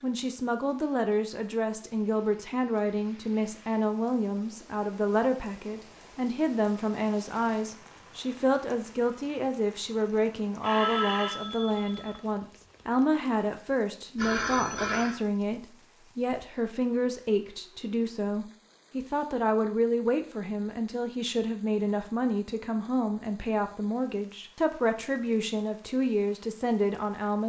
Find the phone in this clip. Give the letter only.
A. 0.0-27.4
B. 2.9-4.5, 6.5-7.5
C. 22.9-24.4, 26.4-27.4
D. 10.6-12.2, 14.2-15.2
D.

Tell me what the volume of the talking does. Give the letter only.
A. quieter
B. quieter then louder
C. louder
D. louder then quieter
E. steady
E.